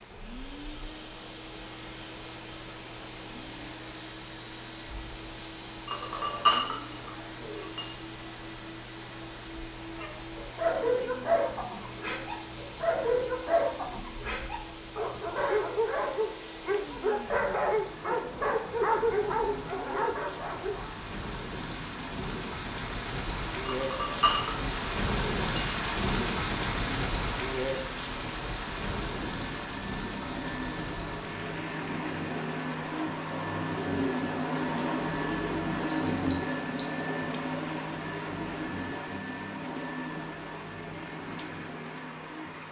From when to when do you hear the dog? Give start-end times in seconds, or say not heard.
9.9-20.9.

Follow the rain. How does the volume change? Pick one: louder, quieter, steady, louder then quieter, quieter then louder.
louder then quieter.